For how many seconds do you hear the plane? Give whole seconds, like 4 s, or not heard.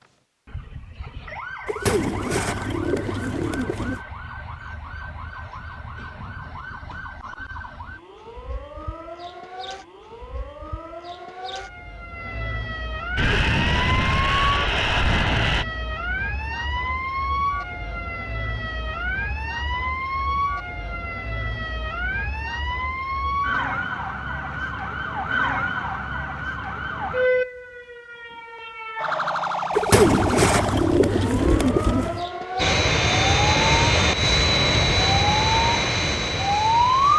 7 s.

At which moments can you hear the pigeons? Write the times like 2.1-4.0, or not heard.
1.6-4.0, 29.7-32.2.